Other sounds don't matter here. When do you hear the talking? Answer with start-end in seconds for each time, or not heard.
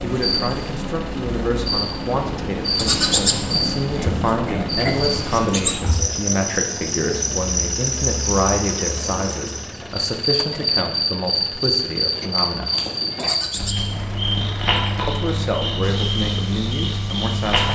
0.0-12.8, 15.1-17.7.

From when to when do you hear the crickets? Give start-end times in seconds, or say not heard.
0.0-17.7.